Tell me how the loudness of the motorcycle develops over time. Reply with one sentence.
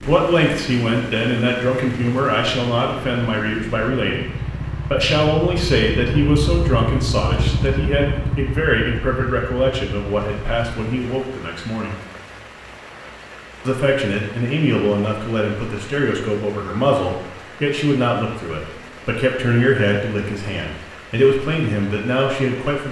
The loudness of the motorcycle goes up, then down.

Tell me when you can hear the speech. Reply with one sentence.
The speech can be heard from 0.0 to 11.9 s and from 13.7 to 22.8 s.